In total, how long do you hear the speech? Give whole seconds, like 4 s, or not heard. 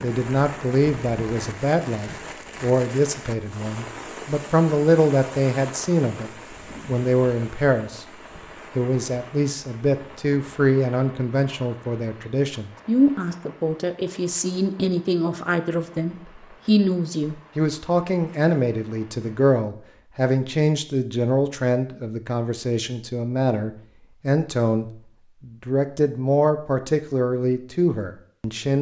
28 s.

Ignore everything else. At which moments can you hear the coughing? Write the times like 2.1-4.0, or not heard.
not heard.